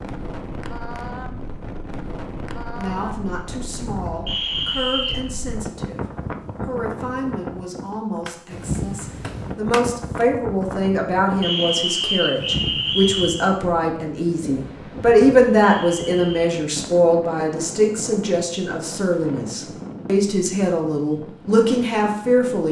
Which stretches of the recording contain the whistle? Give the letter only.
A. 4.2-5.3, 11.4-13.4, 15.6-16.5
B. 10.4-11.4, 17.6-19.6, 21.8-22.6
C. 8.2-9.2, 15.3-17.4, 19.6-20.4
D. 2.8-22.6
A.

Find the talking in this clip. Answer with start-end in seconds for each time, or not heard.
2.8-22.6.